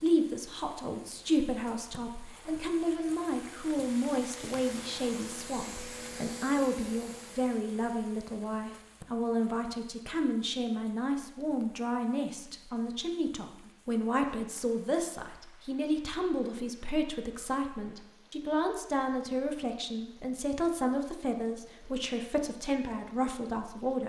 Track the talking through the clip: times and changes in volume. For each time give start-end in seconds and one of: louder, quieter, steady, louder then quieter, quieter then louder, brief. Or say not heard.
0.0-24.0 steady.